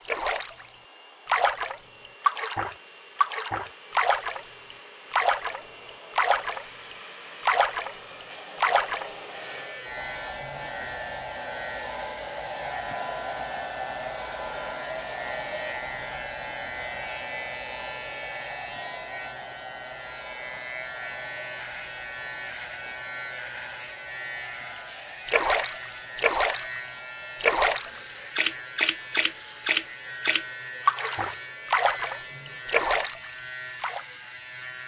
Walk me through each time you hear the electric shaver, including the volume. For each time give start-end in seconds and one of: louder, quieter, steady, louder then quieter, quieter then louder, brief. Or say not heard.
9.2-34.8 steady.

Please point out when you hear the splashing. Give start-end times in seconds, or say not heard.
0.1-0.7, 1.2-9.1, 25.2-26.8, 27.4-34.0.